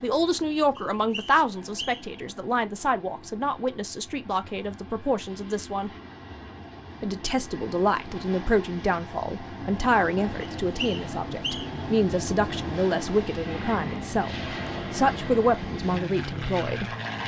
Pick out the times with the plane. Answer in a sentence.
The plane can be heard from 0.0 to 17.2 s.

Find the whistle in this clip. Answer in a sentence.
You can hear the whistle from 0.8 to 2.1 s and from 10.4 to 11.8 s.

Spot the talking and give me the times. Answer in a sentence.
The talking can be heard from 0.0 to 5.9 s and from 7.0 to 16.9 s.